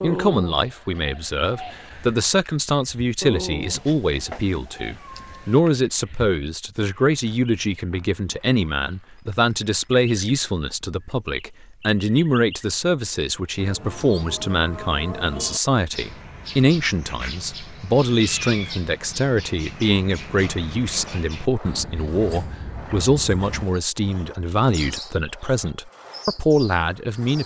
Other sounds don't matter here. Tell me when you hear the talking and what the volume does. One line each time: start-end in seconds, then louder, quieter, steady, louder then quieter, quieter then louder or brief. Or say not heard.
0.0-27.4 steady.